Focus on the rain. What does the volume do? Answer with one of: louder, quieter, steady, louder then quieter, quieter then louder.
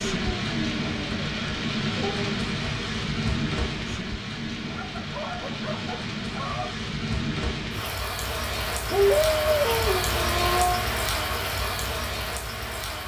steady.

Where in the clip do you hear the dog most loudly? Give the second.
9 s.